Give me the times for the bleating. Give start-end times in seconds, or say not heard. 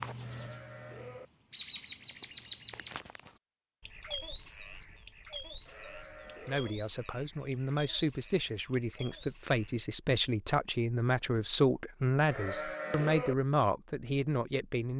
0.2-1.3, 5.7-6.8, 12.2-13.3.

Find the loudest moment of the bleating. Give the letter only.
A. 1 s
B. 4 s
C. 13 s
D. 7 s
C.